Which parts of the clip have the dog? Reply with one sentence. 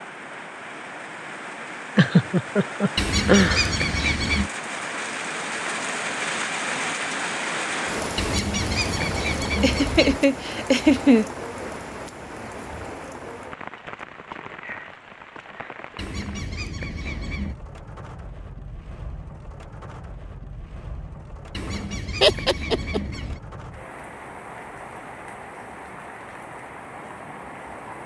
You can't hear the dog here.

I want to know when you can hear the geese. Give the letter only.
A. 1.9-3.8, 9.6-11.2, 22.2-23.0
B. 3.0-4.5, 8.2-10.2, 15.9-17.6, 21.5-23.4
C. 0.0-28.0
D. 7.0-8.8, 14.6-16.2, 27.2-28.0
B.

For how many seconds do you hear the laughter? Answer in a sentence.
The laughter can be heard for 4 seconds in total.